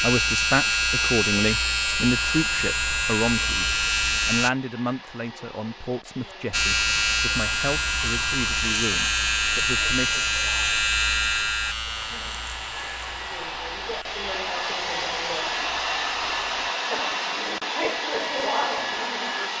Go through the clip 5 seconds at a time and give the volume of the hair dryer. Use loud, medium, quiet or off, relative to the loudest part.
quiet, quiet, medium, loud.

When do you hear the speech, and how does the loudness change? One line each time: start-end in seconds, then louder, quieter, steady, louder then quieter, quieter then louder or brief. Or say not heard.
0.0-10.2 quieter.